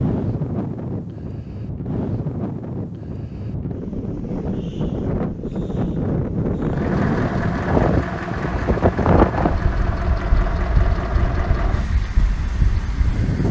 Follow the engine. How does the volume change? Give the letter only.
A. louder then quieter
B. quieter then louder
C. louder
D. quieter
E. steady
D.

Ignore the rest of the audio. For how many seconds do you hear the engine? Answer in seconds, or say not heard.
7 s.